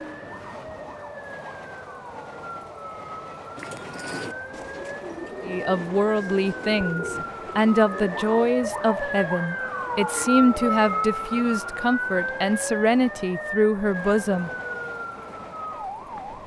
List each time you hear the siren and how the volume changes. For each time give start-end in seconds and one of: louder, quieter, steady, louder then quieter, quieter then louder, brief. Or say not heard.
0.0-16.4 louder then quieter.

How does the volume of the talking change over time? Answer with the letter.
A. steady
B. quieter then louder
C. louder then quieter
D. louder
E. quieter
A.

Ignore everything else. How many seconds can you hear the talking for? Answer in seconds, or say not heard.
9 s.